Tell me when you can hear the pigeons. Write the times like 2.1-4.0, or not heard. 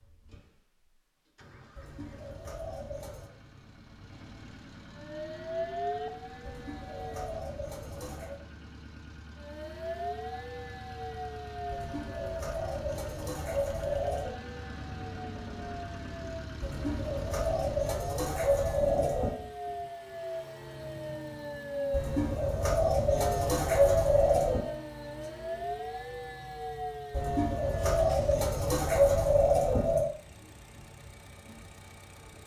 1.8-3.3, 6.5-8.4, 11.7-14.3, 16.6-19.4, 21.9-24.7, 27.1-30.1.